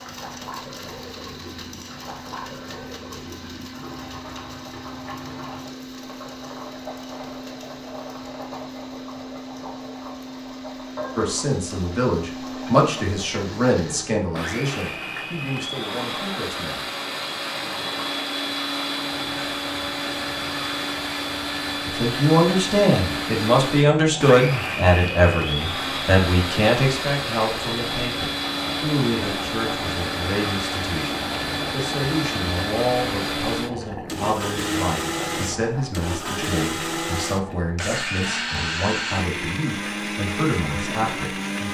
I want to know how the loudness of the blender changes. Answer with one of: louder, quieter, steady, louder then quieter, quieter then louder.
louder.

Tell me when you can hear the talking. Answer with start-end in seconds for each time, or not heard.
11.2-16.8, 21.9-41.6.